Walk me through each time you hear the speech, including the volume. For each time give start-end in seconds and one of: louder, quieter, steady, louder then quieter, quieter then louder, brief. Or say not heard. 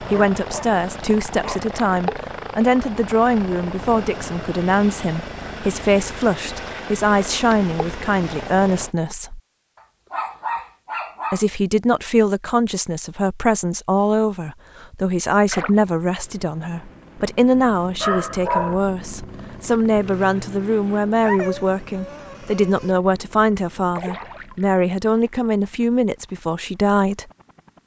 0.0-9.4 steady
11.3-27.2 steady.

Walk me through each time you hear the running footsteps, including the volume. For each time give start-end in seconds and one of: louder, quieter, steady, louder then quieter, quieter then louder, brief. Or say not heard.
not heard.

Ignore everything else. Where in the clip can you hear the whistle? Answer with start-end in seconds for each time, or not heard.
not heard.